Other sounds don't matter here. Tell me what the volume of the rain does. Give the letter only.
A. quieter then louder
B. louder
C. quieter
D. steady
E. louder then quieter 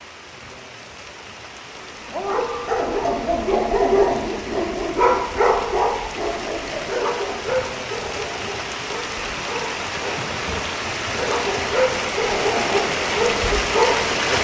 B.